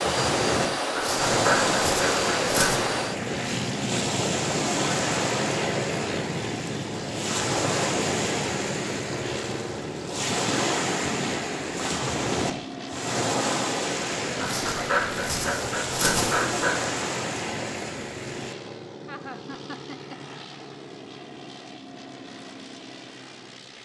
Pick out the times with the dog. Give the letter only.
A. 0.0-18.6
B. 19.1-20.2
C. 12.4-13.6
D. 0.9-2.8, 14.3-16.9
D.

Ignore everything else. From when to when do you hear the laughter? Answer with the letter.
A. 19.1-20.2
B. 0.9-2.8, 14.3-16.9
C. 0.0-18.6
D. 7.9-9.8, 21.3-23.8
A.